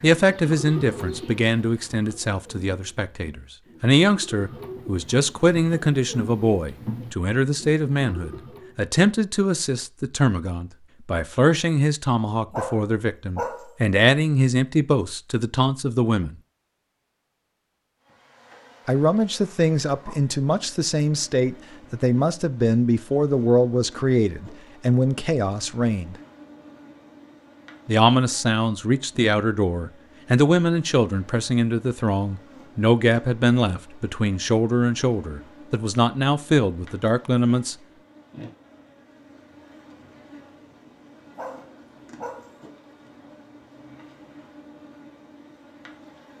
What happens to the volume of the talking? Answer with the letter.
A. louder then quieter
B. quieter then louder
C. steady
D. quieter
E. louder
C.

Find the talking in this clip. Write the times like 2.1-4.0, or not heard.
0.0-16.4, 18.9-26.1, 27.9-37.8.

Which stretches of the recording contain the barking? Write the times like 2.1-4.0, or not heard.
12.5-13.8, 41.4-42.6.